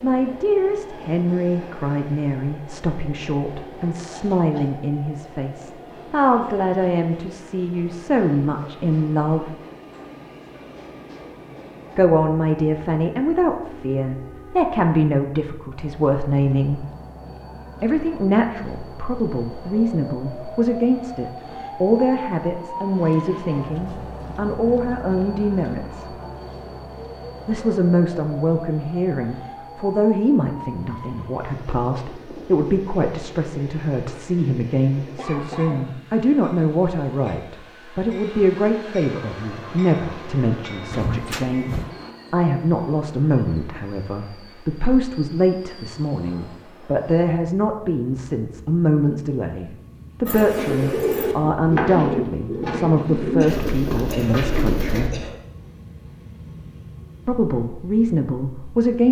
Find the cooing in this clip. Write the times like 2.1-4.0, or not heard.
50.2-55.1.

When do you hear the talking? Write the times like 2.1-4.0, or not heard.
0.0-9.6, 11.9-16.9, 17.8-26.1, 27.4-55.2, 57.2-59.0.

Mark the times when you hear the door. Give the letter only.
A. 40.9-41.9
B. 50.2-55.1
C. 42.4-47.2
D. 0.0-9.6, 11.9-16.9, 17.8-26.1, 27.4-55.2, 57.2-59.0
A.